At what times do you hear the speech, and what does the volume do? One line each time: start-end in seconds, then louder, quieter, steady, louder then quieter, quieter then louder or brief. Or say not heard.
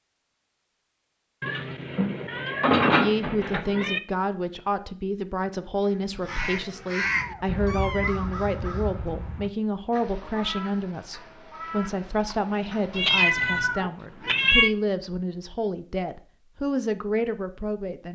3.0-18.1 steady.